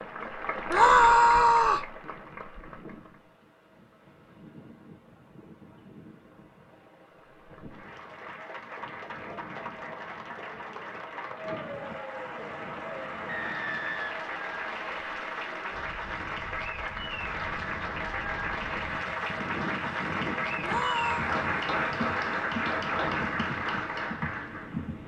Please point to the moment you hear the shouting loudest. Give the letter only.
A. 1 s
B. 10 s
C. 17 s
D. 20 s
A.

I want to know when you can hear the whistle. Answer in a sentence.
The whistle can be heard from 13.2 to 15.1 s.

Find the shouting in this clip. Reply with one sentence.
You can hear the shouting from 0.7 to 1.9 s and from 20.6 to 21.2 s.